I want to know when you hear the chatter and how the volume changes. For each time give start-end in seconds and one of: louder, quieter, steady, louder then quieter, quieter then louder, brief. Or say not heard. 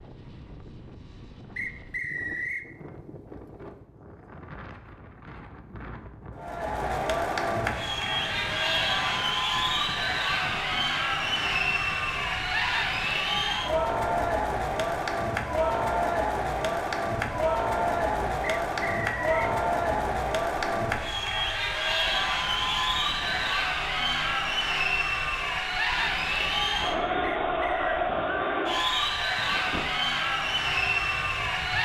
6.3-31.8 steady.